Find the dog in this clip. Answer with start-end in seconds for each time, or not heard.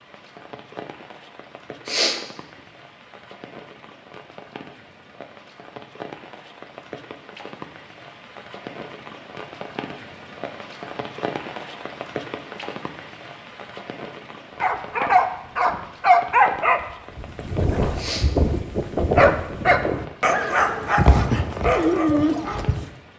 14.6-22.9.